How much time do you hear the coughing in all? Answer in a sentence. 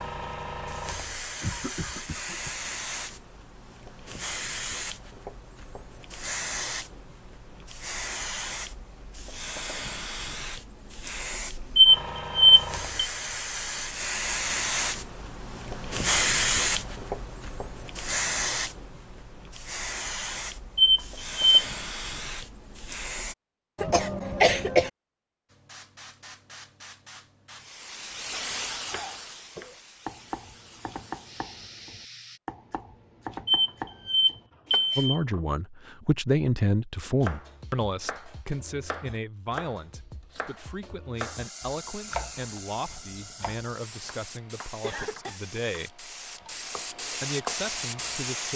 The coughing can be heard for 3 seconds in total.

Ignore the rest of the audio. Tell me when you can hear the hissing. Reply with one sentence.
The hissing can be heard from 0.0 to 23.4 s, from 25.5 to 32.4 s and from 41.1 to 48.5 s.